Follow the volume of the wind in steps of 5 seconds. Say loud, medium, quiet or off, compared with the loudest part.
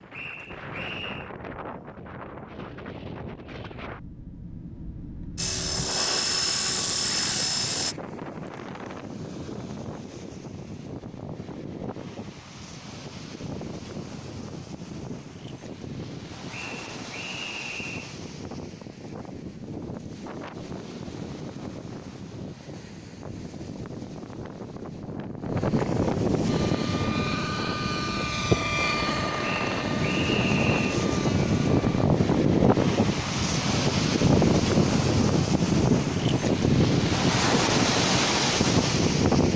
quiet, quiet, quiet, quiet, quiet, medium, loud, loud.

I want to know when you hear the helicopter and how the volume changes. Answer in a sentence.
The helicopter can be heard briefly from 5.3 to 8.0 s; and from 26.4 to 32.1 s, getting louder then quieter.